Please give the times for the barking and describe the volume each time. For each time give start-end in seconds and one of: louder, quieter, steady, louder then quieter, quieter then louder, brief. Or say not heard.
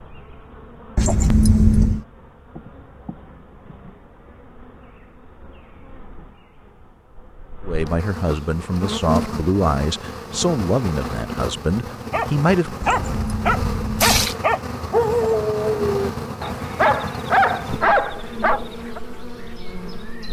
12.1-19.0 steady.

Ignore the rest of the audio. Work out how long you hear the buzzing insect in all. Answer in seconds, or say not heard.
20 s.